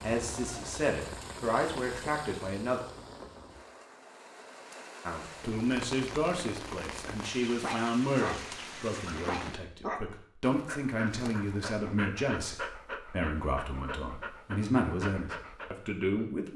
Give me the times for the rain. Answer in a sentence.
The rain can be heard from 0.0 to 9.6 s.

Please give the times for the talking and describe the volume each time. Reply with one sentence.
The talking can be heard briefly from 0.0 to 2.8 s; and from 5.0 to 16.5 s, at a steady volume.